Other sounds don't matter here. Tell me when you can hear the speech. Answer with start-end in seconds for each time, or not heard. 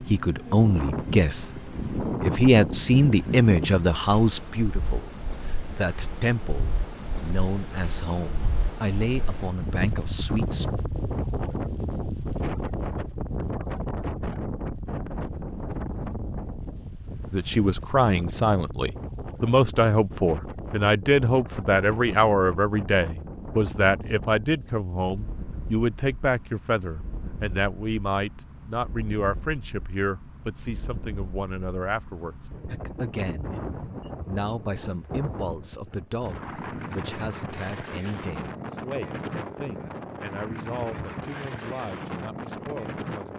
0.0-10.7, 17.3-43.3.